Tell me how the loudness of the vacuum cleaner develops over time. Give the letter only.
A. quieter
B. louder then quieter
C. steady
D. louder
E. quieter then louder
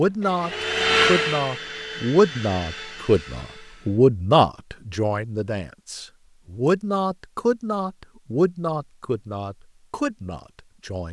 A.